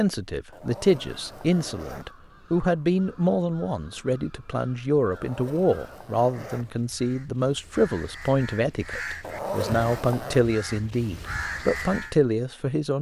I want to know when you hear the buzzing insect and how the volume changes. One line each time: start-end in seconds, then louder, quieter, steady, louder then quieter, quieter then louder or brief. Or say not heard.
not heard.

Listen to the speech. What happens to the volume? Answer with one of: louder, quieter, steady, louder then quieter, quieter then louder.
steady.